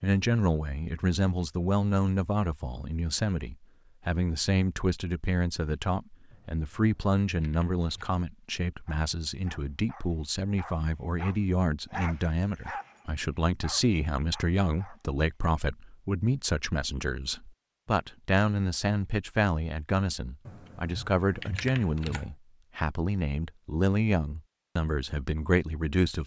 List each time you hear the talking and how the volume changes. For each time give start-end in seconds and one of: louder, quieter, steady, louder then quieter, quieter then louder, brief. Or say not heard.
0.0-26.2 steady.